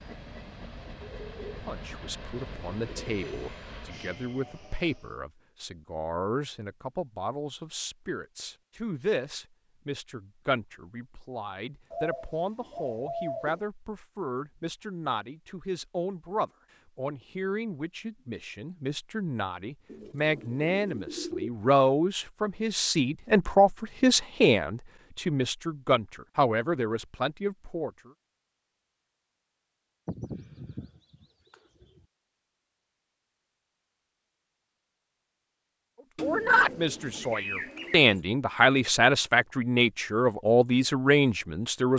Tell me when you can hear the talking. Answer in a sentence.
The talking can be heard from 1.6 to 28.1 s and from 36.2 to 41.9 s.